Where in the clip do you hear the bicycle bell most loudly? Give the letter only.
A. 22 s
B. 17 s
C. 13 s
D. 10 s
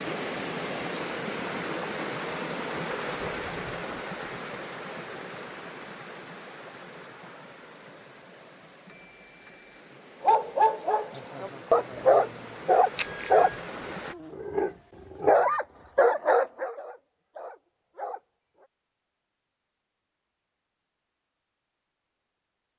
C.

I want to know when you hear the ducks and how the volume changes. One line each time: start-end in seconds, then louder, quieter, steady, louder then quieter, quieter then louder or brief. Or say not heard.
not heard.